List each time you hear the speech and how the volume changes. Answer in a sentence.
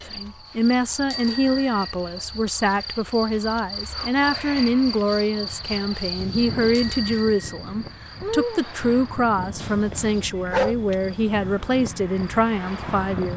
You can hear the speech from 0.1 to 13.3 s, at a steady volume.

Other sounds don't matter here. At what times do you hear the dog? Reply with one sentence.
The dog can be heard from 8.8 to 10.8 s.